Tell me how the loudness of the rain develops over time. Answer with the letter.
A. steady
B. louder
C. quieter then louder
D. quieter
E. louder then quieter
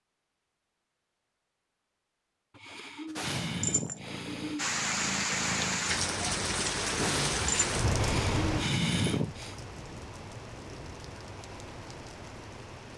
D.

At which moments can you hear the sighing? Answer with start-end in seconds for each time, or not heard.
2.5-4.8, 7.9-9.6.